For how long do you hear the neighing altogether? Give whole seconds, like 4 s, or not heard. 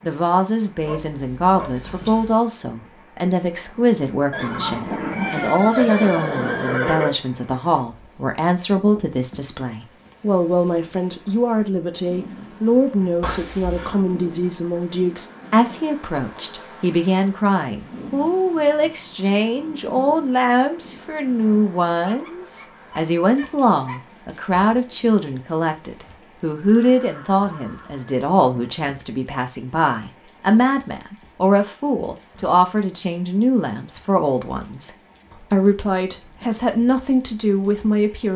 5 s.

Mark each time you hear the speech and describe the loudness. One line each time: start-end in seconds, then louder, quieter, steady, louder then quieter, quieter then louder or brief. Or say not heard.
0.0-38.3 steady.